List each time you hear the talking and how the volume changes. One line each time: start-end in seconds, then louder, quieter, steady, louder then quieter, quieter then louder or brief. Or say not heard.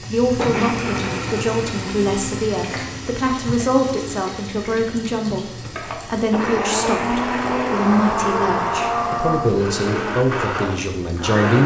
0.0-11.6 steady.